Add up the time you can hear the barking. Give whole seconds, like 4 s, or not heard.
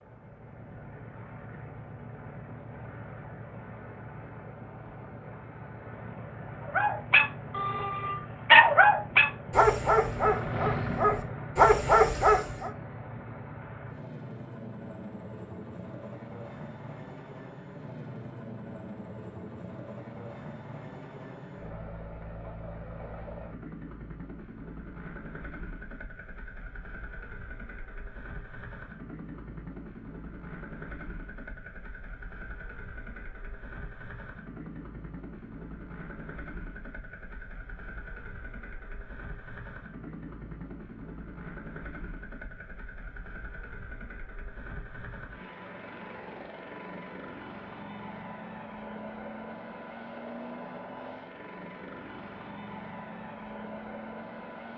6 s.